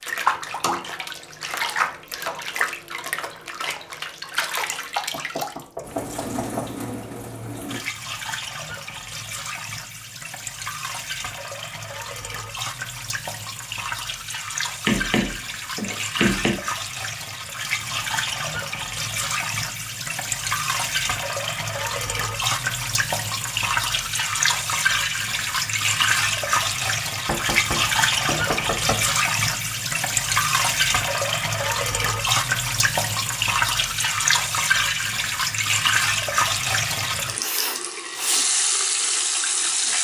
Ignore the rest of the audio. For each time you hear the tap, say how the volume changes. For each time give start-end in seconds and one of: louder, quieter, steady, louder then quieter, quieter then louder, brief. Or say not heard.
0.0-39.9 louder.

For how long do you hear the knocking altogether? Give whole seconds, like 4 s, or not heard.
5 s.